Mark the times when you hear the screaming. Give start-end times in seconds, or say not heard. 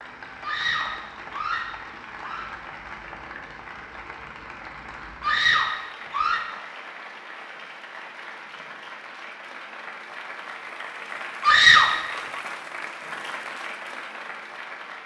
0.4-2.5, 5.2-6.5, 11.4-12.4.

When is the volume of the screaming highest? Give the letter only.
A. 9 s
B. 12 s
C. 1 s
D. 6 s
B.